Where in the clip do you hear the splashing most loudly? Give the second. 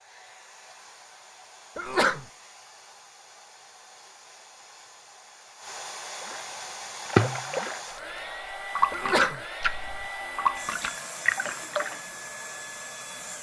7 s.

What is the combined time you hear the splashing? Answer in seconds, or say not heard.
6 s.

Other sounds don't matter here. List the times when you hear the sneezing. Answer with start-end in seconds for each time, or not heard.
1.8-2.2, 8.9-9.4.